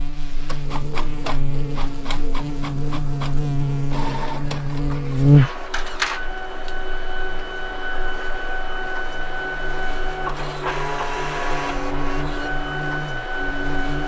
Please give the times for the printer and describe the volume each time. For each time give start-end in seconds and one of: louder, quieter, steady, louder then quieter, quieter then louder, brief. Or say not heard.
0.0-14.0 louder.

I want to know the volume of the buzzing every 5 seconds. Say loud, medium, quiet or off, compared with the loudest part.
medium, loud, medium.